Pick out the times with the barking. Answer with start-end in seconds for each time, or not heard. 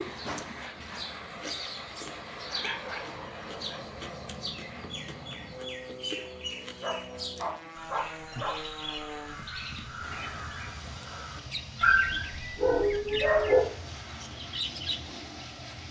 2.4-3.8, 6.8-8.6, 11.8-13.6.